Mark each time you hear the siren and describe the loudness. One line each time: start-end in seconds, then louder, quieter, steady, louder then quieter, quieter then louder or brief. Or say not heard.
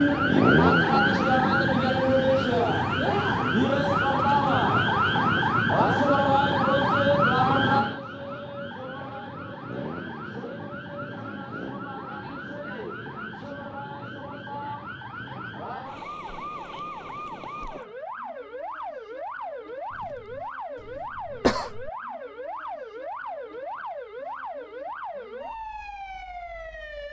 0.0-27.0 quieter.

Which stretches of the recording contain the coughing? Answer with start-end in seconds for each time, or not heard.
19.9-21.9.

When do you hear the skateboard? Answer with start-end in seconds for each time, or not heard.
not heard.